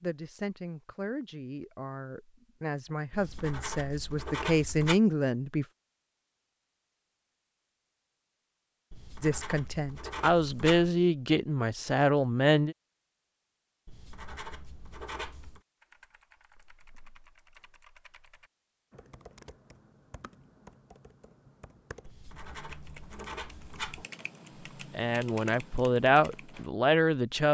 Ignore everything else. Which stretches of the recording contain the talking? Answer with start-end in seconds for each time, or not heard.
0.0-5.7, 9.2-12.8, 24.9-27.4.